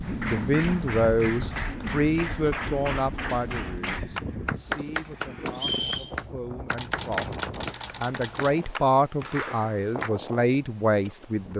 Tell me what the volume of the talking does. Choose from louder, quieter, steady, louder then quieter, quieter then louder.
quieter then louder.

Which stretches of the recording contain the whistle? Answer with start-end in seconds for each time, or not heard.
5.5-6.2.